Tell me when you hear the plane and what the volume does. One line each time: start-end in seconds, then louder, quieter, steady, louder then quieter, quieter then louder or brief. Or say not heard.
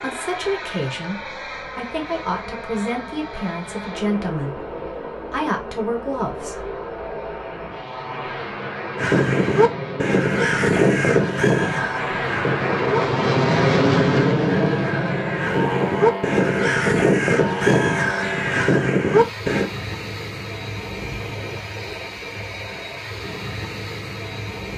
0.0-24.7 louder then quieter.